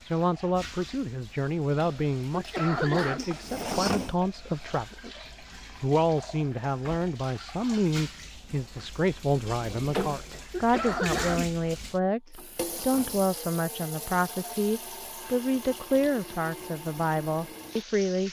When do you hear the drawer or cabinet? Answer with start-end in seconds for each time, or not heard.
3.1-4.2, 8.6-10.4, 12.2-13.3.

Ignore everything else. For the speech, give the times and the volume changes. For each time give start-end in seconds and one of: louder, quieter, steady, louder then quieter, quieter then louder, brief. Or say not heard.
0.0-18.2 steady.